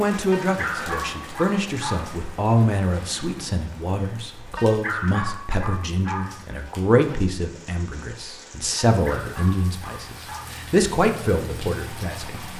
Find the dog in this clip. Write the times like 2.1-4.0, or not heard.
0.3-2.2, 4.5-6.5, 9.0-10.7.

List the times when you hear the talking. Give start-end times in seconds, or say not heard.
0.0-12.5.